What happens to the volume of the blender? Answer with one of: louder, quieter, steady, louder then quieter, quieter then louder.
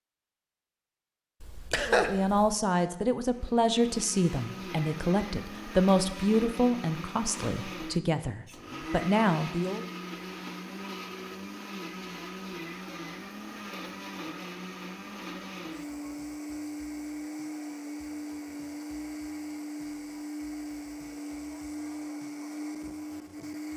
steady.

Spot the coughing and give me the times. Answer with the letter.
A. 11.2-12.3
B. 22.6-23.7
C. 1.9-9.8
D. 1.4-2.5
D.